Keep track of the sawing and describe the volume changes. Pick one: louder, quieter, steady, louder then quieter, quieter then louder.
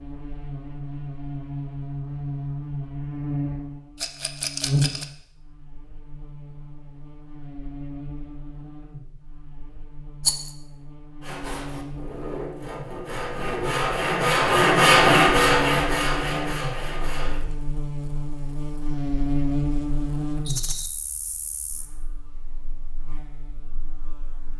louder then quieter.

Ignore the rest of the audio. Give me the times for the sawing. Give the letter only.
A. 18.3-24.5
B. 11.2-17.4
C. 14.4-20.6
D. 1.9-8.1
B.